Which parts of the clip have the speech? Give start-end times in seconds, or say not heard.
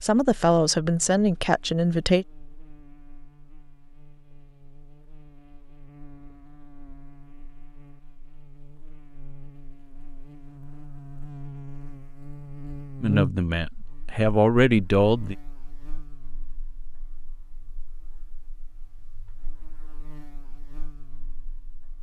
0.0-2.2, 13.0-15.3.